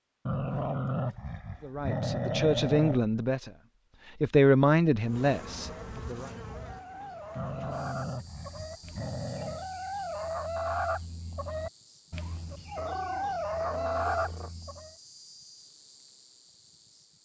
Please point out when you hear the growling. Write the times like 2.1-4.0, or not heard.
0.2-3.0, 7.3-9.7, 12.8-14.5.